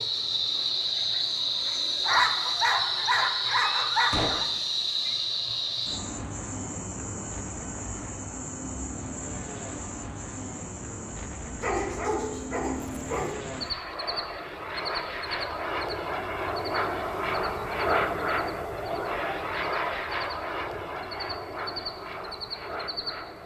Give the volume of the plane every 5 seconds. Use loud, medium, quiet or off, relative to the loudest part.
quiet, quiet, medium, loud, medium.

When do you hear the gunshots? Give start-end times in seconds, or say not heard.
4.1-4.5.